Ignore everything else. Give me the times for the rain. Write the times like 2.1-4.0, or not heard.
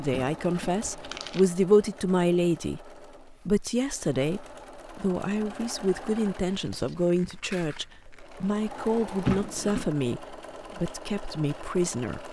not heard.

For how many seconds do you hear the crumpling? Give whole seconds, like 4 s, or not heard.
2 s.